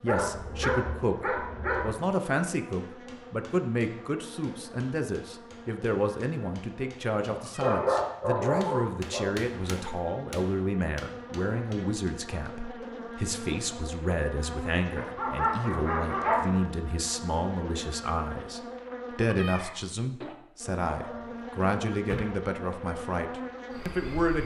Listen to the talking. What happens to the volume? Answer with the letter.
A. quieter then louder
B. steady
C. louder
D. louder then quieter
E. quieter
B.